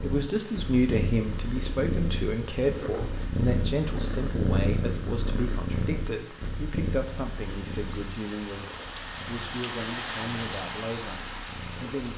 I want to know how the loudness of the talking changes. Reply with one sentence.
The volume of the talking goes down.